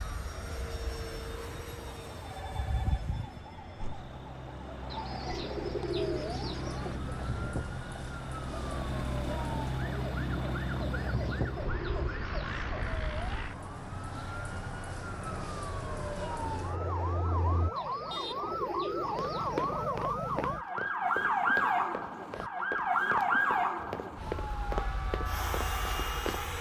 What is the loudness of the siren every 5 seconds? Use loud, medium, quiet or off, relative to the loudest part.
quiet, quiet, quiet, medium, loud, medium.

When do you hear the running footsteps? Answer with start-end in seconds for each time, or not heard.
19.1-26.4.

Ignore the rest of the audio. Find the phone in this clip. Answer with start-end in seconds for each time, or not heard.
2.2-3.0.